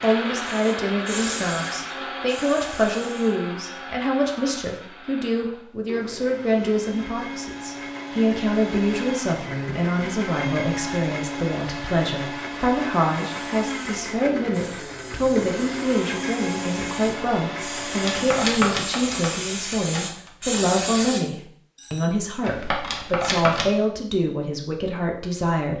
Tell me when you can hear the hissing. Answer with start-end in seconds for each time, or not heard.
0.0-3.4, 13.2-21.2.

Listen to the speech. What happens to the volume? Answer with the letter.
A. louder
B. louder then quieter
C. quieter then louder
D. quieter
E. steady
E.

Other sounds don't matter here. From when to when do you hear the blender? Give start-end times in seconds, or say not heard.
0.0-18.5.